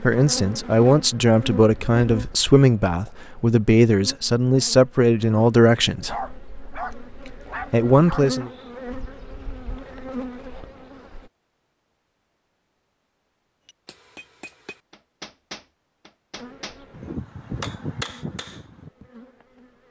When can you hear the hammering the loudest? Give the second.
18 s.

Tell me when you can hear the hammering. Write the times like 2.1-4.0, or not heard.
13.7-19.1.